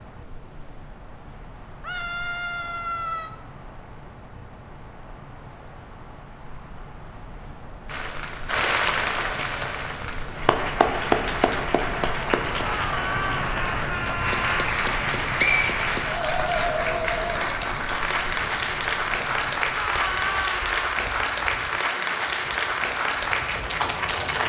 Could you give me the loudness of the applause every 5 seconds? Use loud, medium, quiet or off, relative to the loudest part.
off, loud, loud, loud, loud.